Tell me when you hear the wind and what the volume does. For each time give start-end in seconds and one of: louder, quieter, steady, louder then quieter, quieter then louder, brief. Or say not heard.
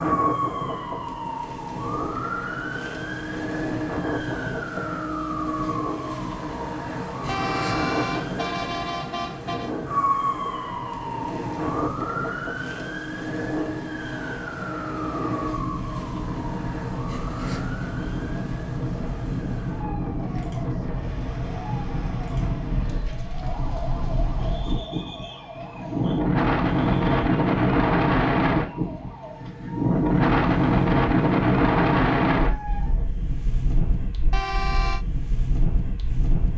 0.0-36.5 louder.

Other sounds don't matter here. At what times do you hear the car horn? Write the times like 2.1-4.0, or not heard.
7.2-9.8, 34.3-35.0.